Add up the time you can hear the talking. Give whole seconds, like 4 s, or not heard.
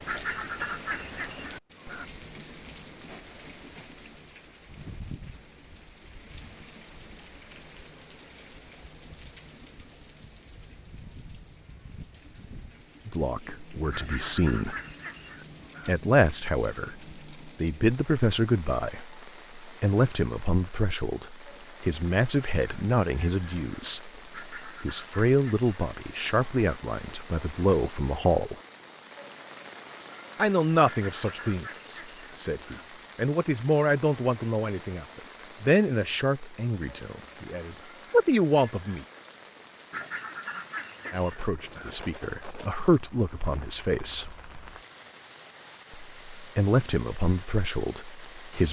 29 s.